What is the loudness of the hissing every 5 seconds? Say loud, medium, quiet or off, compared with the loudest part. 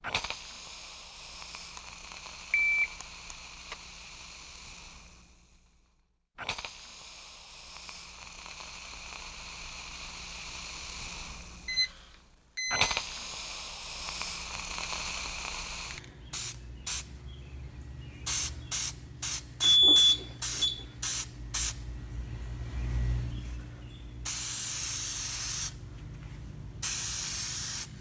medium, medium, loud, loud, loud, loud.